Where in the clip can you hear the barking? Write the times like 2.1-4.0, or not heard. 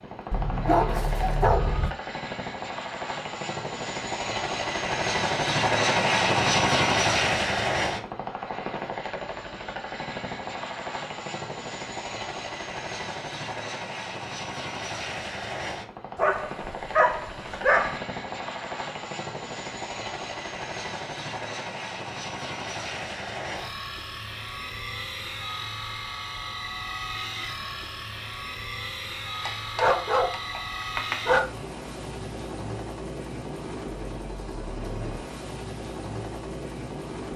0.3-1.9, 16.1-18.0, 29.4-31.4.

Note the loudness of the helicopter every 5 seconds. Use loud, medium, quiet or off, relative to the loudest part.
medium, loud, medium, medium, medium, medium, medium, medium.